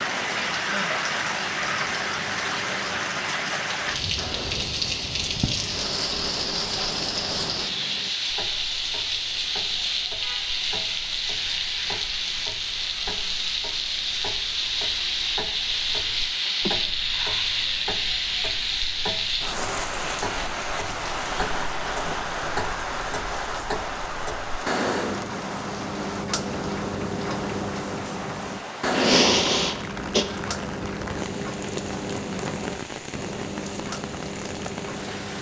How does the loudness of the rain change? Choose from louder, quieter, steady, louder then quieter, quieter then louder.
quieter.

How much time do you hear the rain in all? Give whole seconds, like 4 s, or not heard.
35 s.